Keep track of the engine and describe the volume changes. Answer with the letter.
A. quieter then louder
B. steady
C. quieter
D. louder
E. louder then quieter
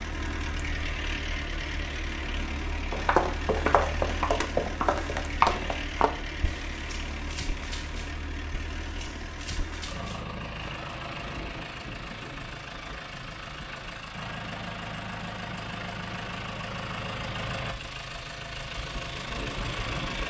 B.